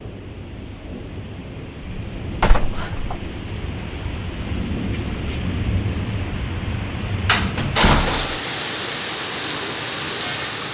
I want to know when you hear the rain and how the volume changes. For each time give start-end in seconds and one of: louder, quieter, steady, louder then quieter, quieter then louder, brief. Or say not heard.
0.0-10.6 louder.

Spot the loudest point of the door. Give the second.
8 s.